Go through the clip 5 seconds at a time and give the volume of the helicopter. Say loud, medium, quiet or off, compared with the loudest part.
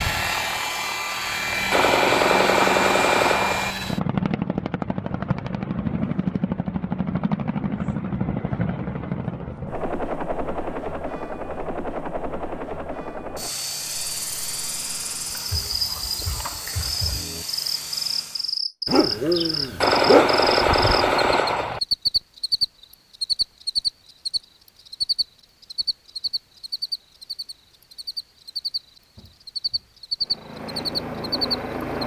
loud, loud, medium, medium, off, off, medium.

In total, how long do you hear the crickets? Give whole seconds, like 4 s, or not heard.
18 s.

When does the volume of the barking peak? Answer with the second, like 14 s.
20 s.